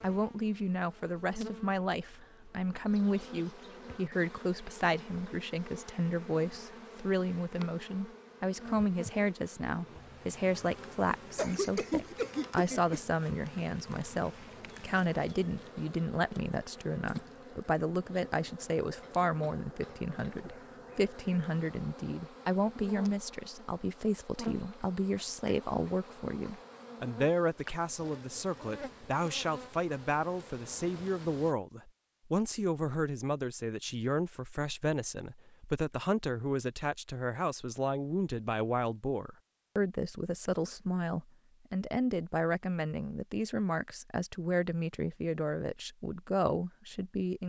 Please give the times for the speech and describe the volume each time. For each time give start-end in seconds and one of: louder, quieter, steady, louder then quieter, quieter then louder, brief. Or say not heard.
0.0-47.4 steady.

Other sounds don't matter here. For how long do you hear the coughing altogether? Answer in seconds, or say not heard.
2 s.